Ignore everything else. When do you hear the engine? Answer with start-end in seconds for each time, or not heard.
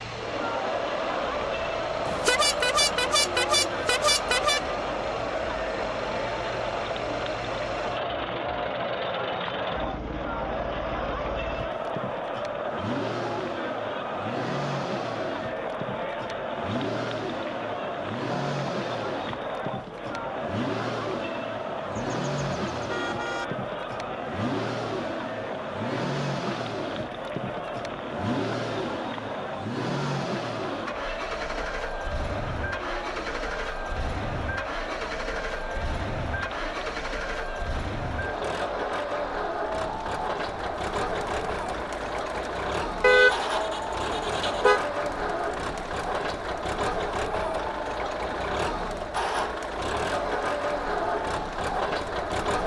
0.0-52.6.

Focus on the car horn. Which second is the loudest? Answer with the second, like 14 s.
43 s.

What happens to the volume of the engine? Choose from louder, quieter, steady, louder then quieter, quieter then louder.
louder.